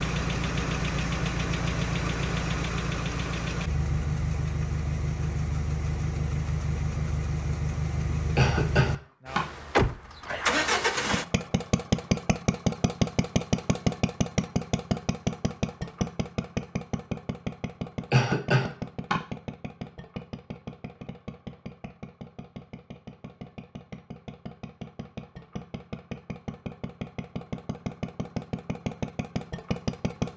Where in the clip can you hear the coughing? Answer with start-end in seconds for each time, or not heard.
8.3-9.4, 18.1-19.1.